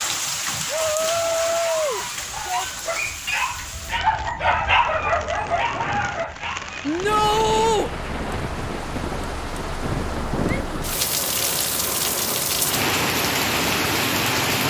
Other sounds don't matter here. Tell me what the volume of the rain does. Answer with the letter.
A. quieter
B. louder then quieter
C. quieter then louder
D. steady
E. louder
C.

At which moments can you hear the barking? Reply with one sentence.
You can hear the barking from 0.6 to 7.0 s.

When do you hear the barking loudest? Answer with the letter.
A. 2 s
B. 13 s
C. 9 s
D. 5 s
D.